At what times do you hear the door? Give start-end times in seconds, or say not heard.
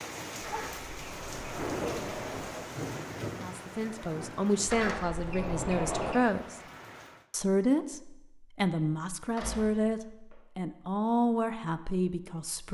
0.3-2.6, 4.7-6.2, 9.3-10.3.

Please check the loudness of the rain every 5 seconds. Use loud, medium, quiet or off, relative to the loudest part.
loud, medium, off.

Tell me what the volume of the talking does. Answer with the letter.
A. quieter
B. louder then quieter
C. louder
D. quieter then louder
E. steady
E.